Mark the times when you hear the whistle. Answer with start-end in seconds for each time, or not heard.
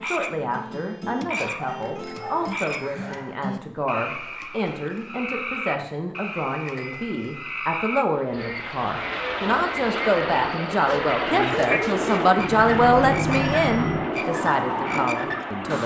not heard.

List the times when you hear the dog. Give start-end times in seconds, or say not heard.
1.4-3.4, 10.8-12.3.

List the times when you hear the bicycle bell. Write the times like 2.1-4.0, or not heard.
1.8-2.9, 6.7-7.5, 12.3-14.1.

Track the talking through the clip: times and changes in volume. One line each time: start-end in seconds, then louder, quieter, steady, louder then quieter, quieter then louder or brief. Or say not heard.
0.0-15.8 louder.